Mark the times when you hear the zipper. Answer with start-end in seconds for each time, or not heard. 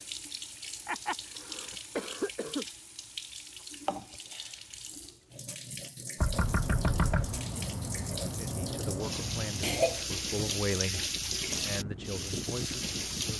not heard.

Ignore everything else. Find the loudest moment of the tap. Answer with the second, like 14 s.
11 s.